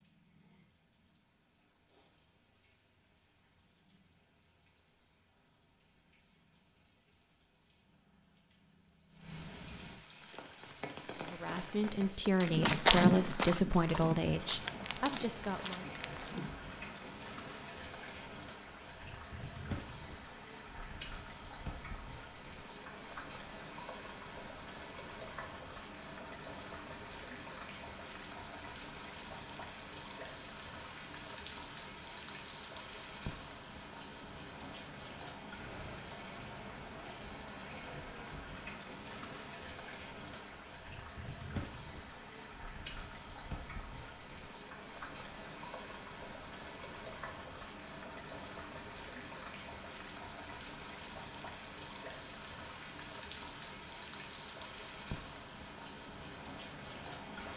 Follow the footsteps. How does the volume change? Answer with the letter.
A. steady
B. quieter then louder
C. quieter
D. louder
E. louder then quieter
E.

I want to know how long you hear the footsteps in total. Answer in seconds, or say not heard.
6 s.